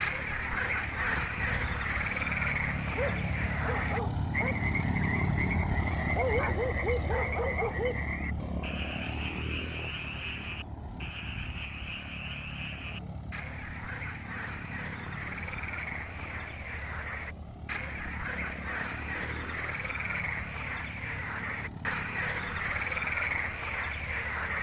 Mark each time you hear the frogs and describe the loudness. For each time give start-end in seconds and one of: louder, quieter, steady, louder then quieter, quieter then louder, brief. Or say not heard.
0.0-24.5 quieter then louder.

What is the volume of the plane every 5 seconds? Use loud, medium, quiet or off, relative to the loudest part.
loud, loud, medium, medium, medium.